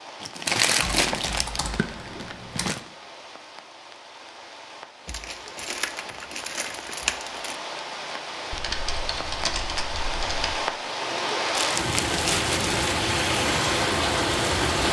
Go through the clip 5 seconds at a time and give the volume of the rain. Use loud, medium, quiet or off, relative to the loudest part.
quiet, medium, loud.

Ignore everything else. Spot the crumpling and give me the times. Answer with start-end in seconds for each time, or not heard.
0.2-2.8, 5.0-7.5, 11.6-13.0.